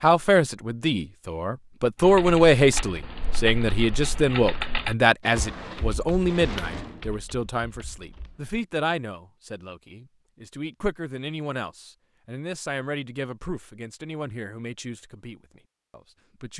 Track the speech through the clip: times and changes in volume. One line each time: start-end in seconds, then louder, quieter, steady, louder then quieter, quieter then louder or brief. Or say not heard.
0.0-16.5 quieter.